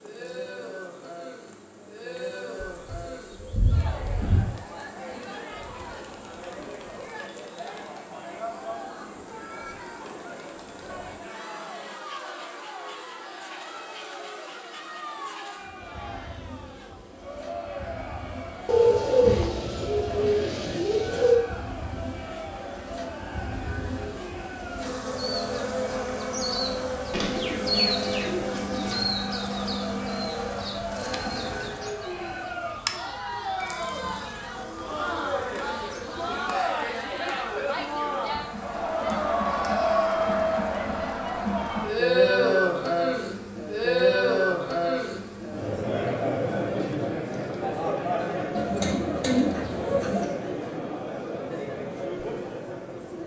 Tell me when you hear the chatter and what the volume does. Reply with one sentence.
You can hear the chatter from 0.0 to 53.2 s, getting louder.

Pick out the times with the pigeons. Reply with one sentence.
You can hear the pigeons from 2.9 to 4.5 s, from 18.6 to 21.4 s, from 27.1 to 29.1 s and from 48.5 to 50.2 s.